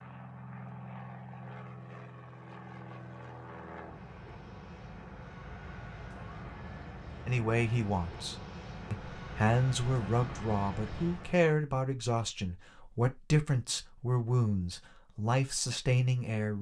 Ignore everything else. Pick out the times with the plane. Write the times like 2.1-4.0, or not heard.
0.0-11.5.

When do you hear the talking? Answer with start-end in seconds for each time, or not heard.
7.2-16.5.